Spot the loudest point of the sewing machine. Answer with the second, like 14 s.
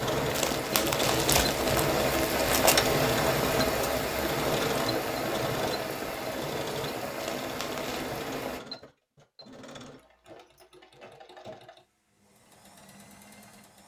3 s.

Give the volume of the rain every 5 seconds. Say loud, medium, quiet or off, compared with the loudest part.
loud, medium, off.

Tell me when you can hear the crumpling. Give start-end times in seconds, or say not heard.
0.3-2.8, 7.2-8.1.